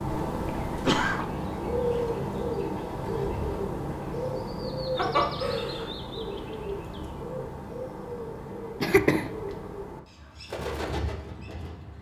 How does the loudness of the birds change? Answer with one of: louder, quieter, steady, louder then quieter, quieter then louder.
quieter.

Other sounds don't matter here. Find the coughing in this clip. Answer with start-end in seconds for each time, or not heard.
0.2-1.2, 5.0-6.0, 8.8-9.3.